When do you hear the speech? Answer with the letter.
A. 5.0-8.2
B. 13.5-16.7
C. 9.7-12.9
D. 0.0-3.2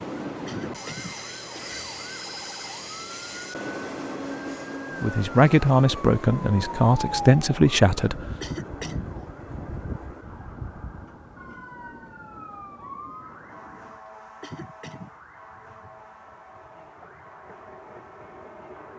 A.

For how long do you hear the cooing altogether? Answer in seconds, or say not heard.
not heard.